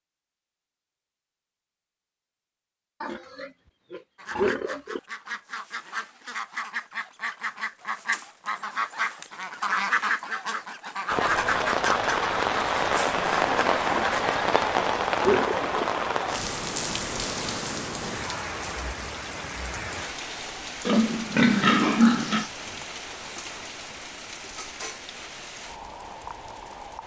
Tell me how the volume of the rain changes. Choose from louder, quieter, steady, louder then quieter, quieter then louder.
quieter.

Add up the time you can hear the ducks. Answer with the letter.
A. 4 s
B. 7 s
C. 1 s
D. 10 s
D.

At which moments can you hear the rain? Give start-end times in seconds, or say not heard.
11.1-27.0.